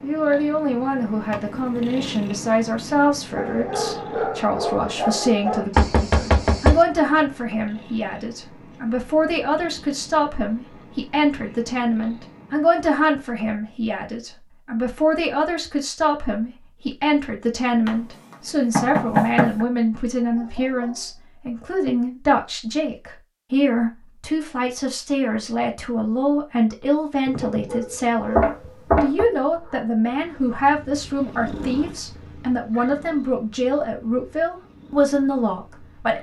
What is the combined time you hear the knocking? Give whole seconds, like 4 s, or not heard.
3 s.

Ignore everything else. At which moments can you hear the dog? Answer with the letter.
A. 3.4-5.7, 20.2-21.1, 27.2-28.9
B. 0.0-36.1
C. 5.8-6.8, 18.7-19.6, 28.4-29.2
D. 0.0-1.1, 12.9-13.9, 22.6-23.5
A.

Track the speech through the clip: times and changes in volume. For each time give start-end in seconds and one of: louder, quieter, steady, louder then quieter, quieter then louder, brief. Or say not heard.
0.0-36.1 steady.